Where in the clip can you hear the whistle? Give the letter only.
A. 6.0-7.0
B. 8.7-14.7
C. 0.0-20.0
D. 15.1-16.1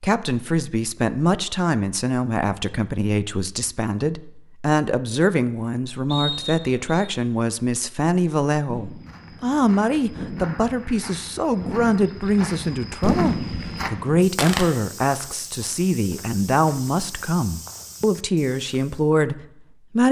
A.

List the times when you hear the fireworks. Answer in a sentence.
The fireworks can be heard from 8.7 to 14.7 s.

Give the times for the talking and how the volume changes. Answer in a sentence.
You can hear the talking from 0.0 to 20.0 s, at a steady volume.